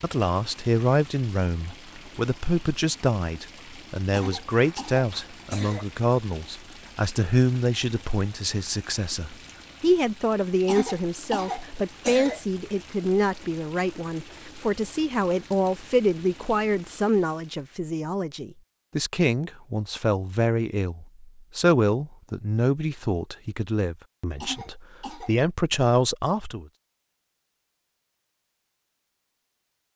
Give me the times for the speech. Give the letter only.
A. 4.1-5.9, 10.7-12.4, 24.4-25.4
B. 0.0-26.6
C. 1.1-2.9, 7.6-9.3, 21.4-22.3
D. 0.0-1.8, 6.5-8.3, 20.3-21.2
B.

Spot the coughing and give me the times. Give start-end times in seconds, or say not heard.
4.1-5.9, 10.7-12.4, 24.4-25.4.